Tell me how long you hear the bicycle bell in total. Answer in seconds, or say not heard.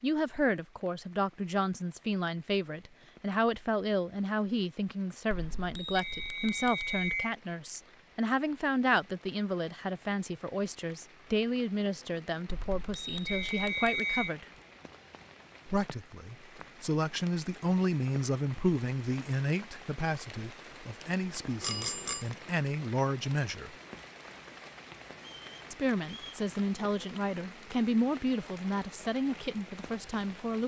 4 s.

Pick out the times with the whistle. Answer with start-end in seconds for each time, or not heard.
6.0-7.3, 13.2-14.3, 25.2-26.4.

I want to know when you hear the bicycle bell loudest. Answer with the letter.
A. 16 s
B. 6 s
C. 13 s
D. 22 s
D.